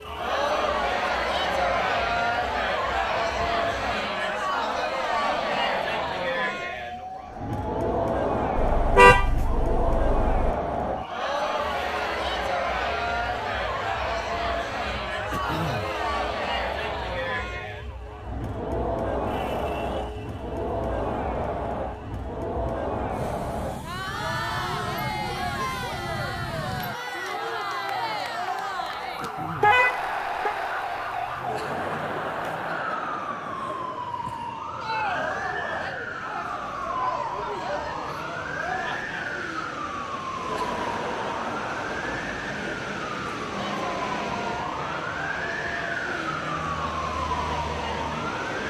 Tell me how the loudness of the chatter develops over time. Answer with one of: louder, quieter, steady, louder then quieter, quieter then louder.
quieter.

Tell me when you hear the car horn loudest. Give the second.
9 s.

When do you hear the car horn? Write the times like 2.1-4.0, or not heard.
8.6-10.6, 29.6-30.6.